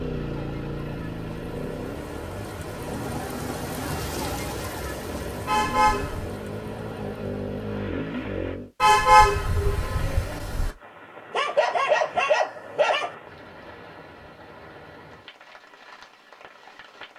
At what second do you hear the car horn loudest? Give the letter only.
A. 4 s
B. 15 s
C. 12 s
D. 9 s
D.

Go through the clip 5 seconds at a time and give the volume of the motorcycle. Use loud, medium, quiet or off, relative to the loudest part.
loud, loud, off, off.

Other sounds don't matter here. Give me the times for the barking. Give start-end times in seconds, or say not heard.
11.3-13.2.